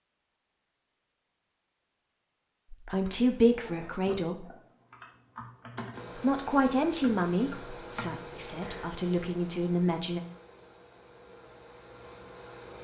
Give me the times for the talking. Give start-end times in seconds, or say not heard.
2.7-4.5, 6.2-10.2.